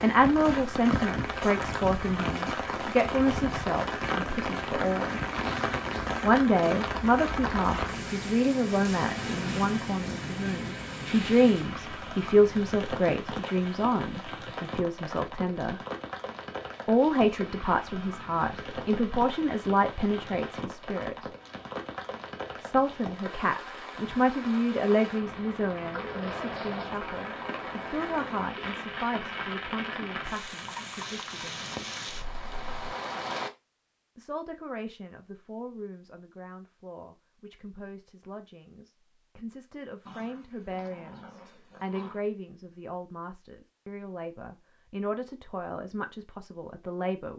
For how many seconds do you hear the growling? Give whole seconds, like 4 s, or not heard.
5 s.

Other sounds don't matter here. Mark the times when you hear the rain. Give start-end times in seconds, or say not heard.
0.0-33.5.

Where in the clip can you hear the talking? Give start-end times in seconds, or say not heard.
0.0-5.2, 6.2-15.8, 16.9-21.2, 22.6-31.9, 34.1-47.3.